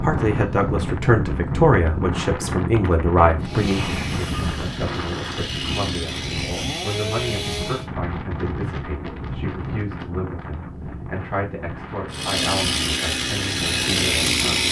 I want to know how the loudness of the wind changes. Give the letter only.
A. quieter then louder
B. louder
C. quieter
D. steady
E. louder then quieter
C.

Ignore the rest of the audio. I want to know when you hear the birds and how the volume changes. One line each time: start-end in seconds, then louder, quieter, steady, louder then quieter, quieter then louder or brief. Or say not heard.
not heard.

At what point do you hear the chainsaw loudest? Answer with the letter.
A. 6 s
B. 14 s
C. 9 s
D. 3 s
B.